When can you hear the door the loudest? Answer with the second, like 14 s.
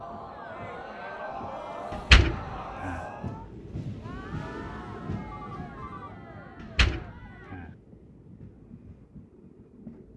2 s.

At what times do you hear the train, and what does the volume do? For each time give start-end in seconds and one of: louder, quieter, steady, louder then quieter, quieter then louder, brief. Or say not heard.
0.0-10.1 louder then quieter.